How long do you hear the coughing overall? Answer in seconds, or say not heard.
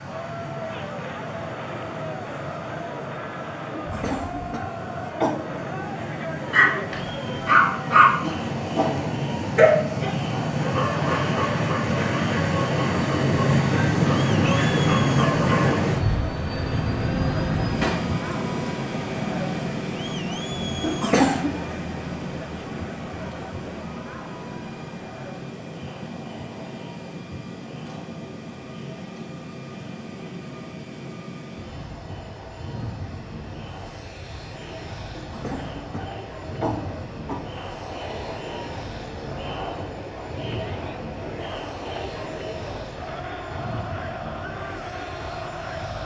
5 s.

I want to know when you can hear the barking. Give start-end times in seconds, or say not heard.
6.5-15.8.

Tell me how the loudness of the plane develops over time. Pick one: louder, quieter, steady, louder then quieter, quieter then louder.
louder then quieter.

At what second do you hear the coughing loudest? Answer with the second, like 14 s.
21 s.